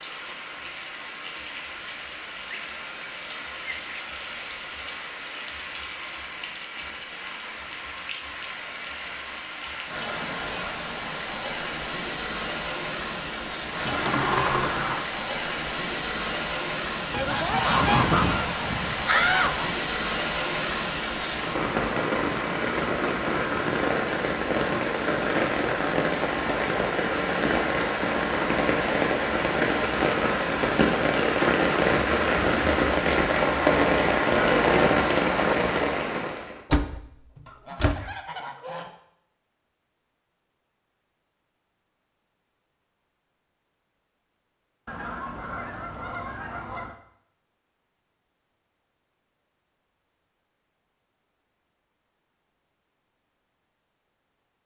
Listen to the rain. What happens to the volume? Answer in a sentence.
The volume of the rain goes up.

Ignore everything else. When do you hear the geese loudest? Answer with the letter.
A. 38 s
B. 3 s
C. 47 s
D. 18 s
D.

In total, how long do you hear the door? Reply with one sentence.
The door can be heard for 3 seconds in total.